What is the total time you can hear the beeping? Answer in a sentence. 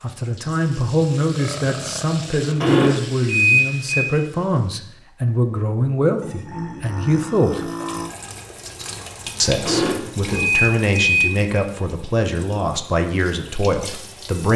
You can hear the beeping for 3 seconds altogether.